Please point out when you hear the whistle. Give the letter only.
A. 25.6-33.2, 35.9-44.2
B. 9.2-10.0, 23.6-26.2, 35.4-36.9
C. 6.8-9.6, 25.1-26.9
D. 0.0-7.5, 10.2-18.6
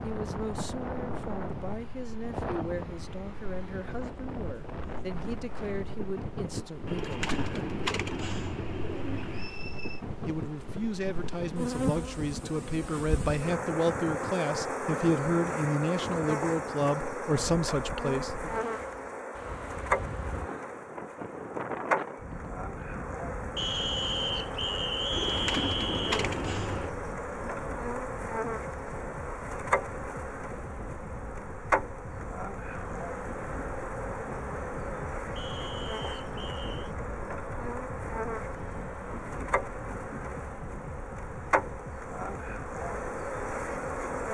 B.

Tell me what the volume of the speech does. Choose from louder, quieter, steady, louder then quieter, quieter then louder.
louder.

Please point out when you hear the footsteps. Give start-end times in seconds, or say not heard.
not heard.